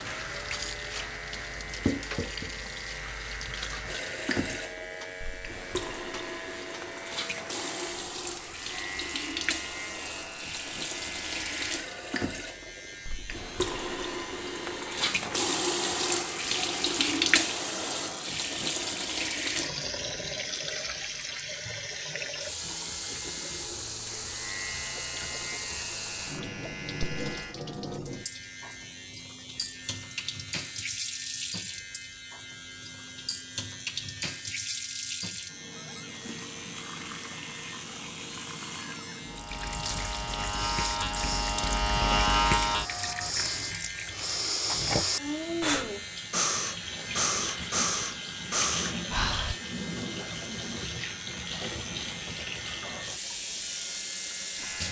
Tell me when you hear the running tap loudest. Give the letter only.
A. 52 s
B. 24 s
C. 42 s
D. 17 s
D.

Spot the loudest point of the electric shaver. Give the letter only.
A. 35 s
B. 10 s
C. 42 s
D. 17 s
C.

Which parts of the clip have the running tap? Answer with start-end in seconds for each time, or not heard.
0.0-54.8.